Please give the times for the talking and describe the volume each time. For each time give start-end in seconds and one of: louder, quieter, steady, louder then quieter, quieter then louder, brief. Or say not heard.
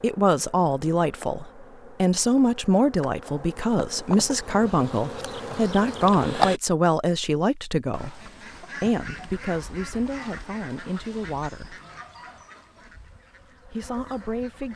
0.0-11.8 quieter
13.7-14.7 brief.